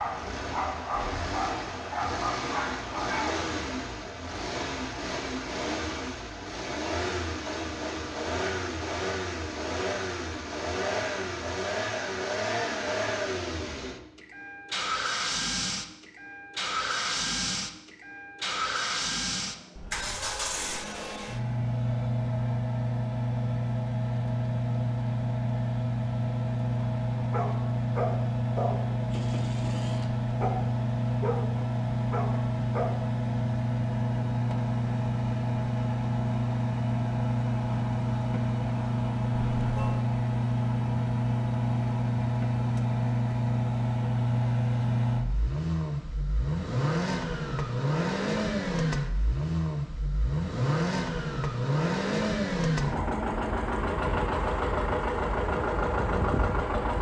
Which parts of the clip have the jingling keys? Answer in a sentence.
You can't hear the jingling keys here.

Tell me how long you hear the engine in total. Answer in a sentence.
You can hear the engine for 57 seconds altogether.